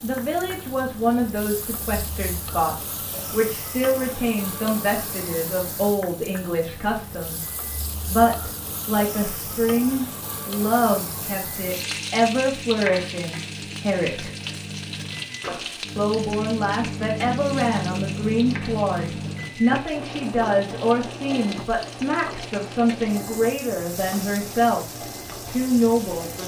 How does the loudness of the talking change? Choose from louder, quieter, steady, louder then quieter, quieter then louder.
steady.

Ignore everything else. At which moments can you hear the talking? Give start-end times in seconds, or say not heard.
0.0-7.5, 8.1-14.3, 15.9-26.4.